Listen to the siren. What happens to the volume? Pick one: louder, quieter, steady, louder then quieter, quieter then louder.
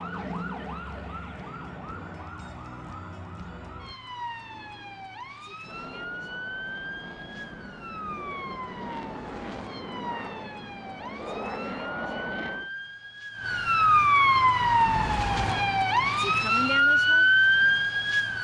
louder.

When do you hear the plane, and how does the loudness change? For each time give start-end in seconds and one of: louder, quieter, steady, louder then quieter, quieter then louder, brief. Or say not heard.
0.0-2.4 brief
4.4-12.7 louder.